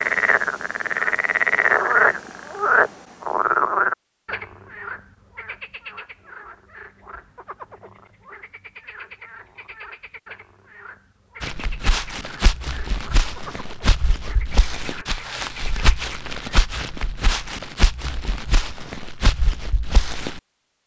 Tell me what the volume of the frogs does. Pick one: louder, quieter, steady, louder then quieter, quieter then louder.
quieter.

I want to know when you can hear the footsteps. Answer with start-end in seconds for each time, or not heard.
11.4-20.4.